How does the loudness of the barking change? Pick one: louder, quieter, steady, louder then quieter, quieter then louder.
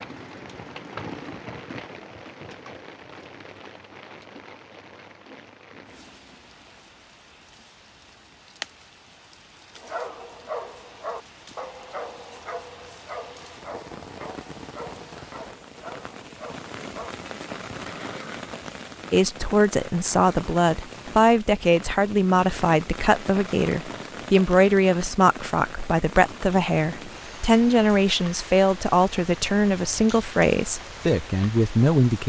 quieter.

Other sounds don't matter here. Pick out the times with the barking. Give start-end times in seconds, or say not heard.
9.8-17.1.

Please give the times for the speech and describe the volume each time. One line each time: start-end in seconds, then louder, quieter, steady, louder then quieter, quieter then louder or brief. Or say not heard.
19.1-32.2 steady.